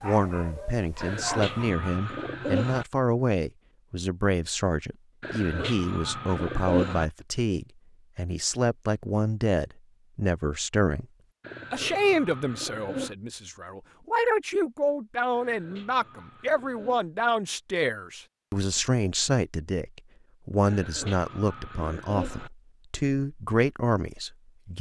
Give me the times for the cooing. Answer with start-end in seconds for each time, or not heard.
1.0-2.9, 5.2-7.0, 11.4-13.2, 15.3-17.1, 20.6-22.5.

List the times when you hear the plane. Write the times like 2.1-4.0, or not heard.
not heard.